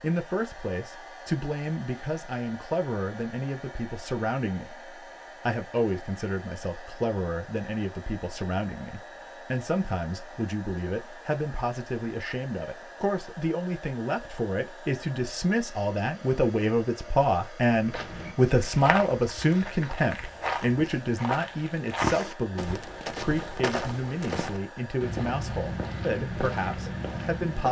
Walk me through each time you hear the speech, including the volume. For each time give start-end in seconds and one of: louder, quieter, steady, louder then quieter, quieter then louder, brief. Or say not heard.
0.0-27.6 louder then quieter.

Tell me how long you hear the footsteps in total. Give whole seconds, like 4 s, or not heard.
10 s.